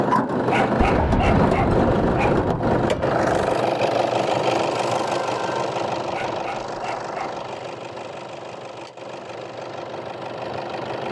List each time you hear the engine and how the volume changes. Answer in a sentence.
You can hear the engine from 0.0 to 11.0 s, getting quieter.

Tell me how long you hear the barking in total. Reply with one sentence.
The barking can be heard for 3 seconds in total.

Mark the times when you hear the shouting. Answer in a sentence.
The shouting can't be heard in this clip.